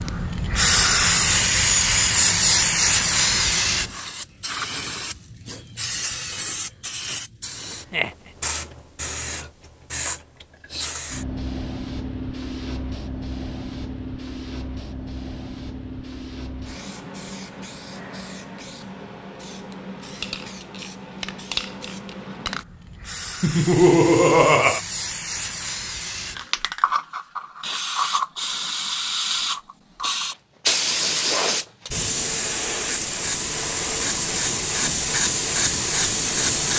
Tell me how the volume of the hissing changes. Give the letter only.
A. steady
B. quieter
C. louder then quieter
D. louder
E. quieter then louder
E.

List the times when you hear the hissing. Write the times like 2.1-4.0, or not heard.
0.0-36.7.